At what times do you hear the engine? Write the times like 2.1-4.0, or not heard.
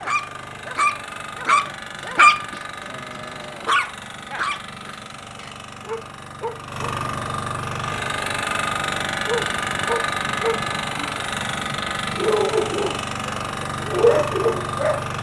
0.0-15.1.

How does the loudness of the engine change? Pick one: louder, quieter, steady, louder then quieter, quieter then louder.
louder.